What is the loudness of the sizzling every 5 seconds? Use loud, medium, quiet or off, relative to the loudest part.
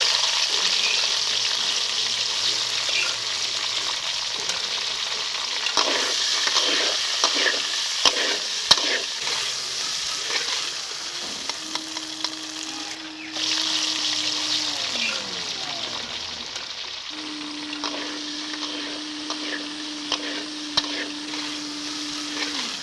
loud, loud, medium, medium, medium.